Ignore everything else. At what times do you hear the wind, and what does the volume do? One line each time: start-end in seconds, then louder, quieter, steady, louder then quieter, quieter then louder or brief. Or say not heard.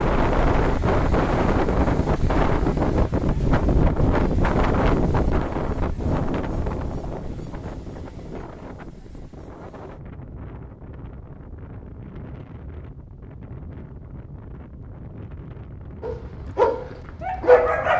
0.0-17.9 quieter.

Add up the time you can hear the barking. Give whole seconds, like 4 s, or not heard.
2 s.